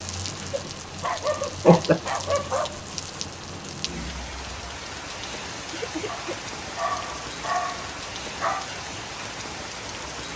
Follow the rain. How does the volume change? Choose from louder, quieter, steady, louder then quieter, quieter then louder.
steady.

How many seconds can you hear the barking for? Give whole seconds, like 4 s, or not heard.
5 s.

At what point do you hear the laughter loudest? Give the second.
2 s.